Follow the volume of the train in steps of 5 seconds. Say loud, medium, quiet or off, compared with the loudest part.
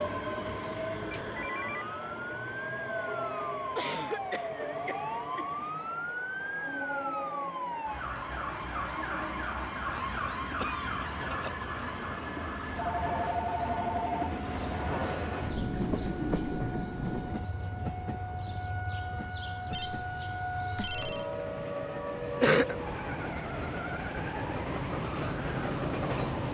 medium, medium, medium, loud, medium, loud.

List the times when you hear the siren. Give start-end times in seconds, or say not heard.
0.0-26.4.